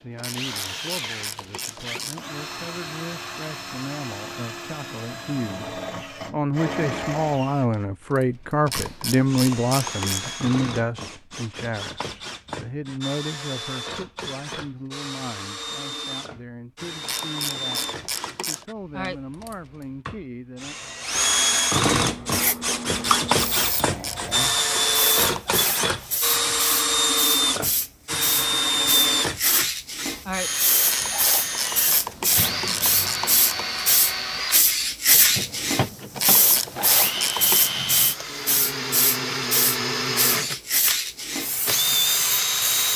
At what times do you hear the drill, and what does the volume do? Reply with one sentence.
The drill can be heard from 0.0 to 42.9 s, getting louder.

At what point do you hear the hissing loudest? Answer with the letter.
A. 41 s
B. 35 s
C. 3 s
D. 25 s
B.